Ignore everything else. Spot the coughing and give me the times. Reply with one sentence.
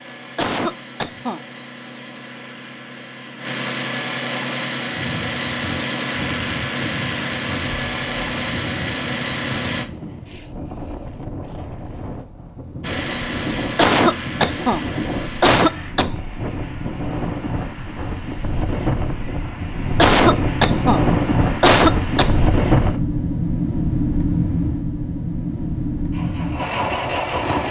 You can hear the coughing from 0.3 to 1.4 s, from 13.8 to 14.8 s, from 15.4 to 16.1 s, from 19.9 to 21.0 s and from 21.6 to 22.4 s.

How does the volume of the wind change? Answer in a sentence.
The volume of the wind goes up.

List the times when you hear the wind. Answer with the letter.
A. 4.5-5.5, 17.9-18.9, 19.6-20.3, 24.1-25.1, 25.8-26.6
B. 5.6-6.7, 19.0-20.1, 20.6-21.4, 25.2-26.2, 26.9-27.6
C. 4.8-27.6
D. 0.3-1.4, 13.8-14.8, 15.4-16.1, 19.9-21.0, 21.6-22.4
C.